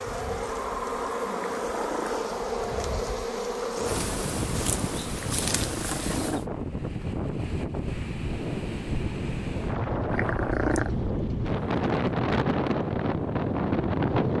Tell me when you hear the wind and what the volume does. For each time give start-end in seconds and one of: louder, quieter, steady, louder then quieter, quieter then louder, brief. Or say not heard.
0.0-14.3 louder.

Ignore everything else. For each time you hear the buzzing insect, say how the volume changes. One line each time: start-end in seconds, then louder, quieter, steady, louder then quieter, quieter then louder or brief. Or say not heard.
0.0-6.5 steady.